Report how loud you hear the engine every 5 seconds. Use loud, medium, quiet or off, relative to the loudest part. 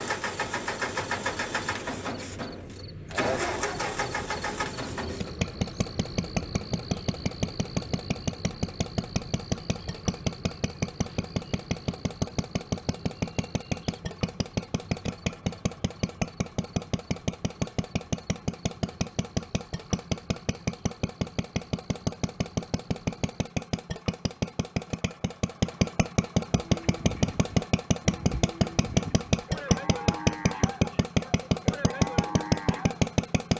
medium, medium, medium, medium, medium, loud, loud.